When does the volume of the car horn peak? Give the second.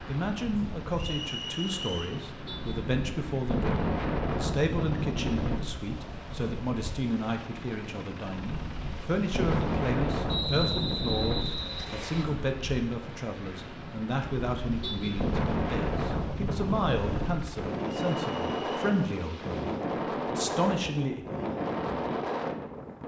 15 s.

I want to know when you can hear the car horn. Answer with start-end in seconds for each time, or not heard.
2.5-2.9, 14.8-15.2.